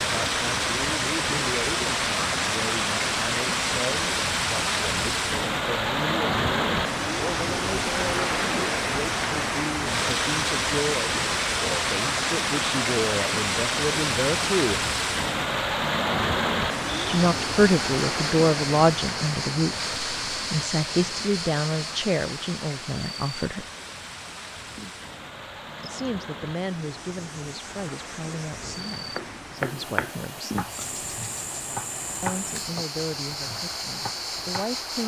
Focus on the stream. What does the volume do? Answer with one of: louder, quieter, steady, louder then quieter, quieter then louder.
quieter.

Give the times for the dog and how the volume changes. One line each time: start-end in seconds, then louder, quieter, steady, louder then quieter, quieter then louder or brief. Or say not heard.
not heard.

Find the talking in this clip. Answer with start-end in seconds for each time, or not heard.
0.2-14.8, 17.1-23.6, 25.8-30.6, 32.2-35.0.